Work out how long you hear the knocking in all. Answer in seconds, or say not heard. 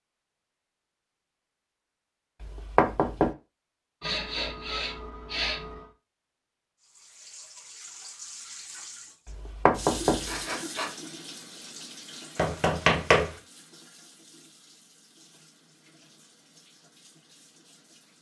3 s.